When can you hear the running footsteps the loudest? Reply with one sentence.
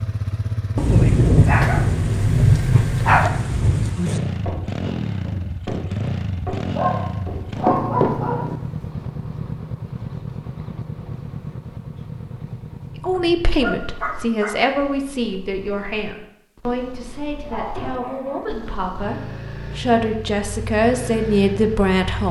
The loudest moment of the running footsteps is at 8 seconds.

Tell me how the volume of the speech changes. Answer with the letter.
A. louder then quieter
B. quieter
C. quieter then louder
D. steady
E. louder
C.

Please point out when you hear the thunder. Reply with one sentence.
You can hear the thunder from 0.8 to 4.2 s.